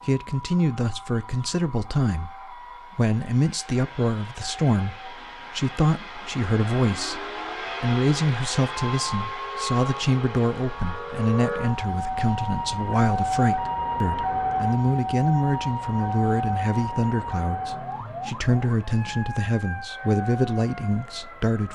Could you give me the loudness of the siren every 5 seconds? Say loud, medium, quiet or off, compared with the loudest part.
quiet, medium, loud, loud, medium.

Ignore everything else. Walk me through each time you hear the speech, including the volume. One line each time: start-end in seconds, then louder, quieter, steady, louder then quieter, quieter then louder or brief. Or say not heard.
0.1-21.7 steady.